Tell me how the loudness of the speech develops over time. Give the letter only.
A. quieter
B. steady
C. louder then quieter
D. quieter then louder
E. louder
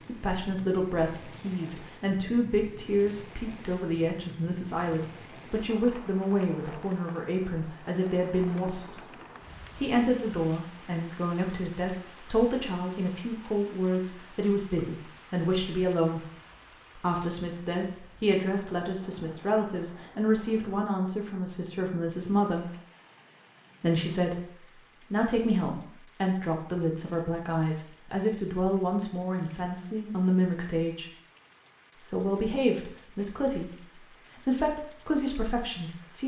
B.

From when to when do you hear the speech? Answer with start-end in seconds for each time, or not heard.
0.1-9.1, 9.8-16.2, 16.9-22.7, 23.8-31.1, 32.0-36.2.